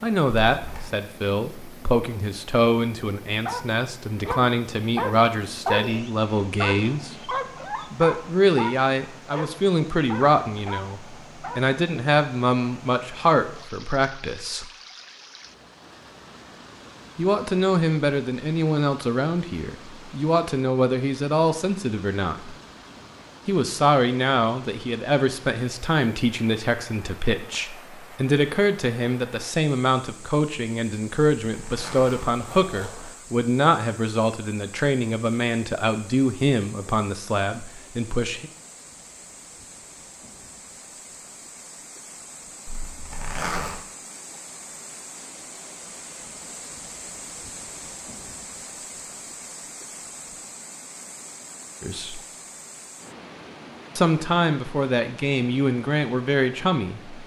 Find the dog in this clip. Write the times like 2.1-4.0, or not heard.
3.5-11.8.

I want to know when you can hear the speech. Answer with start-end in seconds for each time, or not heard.
0.0-14.7, 17.1-22.6, 23.4-38.5, 51.8-52.2, 54.0-57.2.